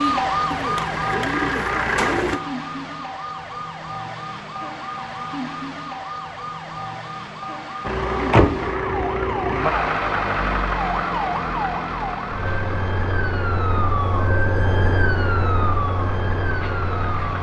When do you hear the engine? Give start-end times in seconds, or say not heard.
0.0-2.4, 7.8-17.3.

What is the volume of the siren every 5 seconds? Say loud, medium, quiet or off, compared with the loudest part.
loud, medium, loud, loud.